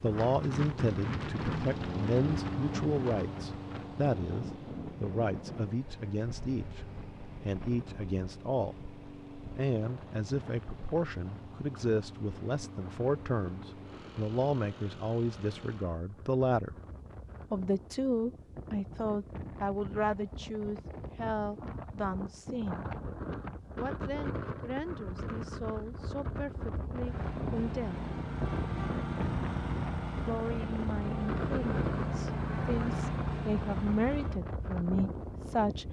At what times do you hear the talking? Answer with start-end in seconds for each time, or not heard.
0.0-16.8, 17.5-22.9, 23.8-28.1, 30.2-35.8.